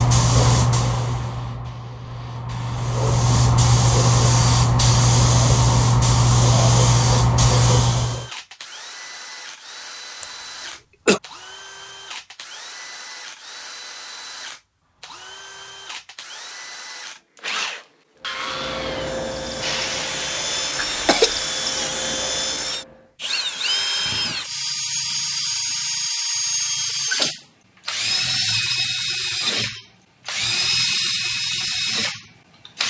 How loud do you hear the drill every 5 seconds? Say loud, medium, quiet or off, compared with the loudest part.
off, quiet, quiet, medium, loud, loud, loud.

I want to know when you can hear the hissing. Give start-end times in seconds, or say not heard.
0.0-8.3, 18.3-23.0.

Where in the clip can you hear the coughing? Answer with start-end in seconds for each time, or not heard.
10.2-11.2, 20.8-21.4.